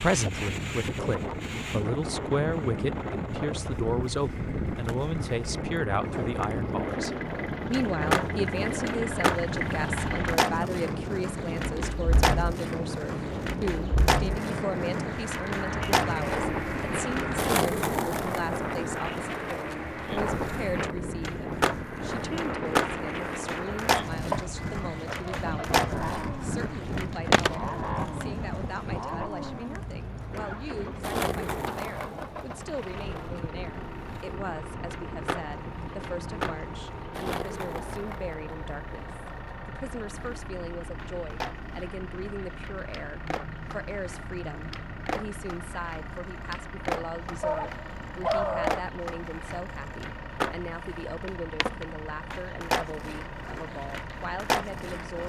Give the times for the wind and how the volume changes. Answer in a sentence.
You can hear the wind from 0.0 to 37.0 s, getting quieter.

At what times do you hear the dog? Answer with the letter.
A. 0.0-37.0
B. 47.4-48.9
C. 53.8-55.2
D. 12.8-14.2
B.